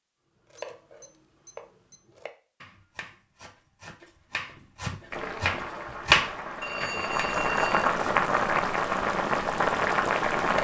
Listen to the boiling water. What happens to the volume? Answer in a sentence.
The volume of the boiling water goes up.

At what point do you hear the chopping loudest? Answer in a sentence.
The volume of the chopping peaks at 6 seconds.